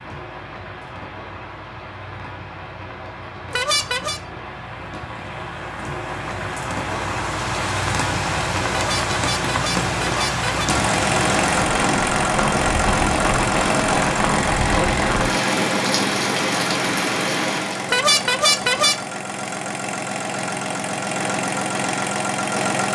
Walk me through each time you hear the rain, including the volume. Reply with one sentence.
You can hear the rain from 0.0 to 17.9 s, getting louder.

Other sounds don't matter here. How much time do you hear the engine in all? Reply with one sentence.
The engine can be heard for 12 seconds in total.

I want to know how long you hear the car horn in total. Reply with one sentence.
You can hear the car horn for 4 seconds altogether.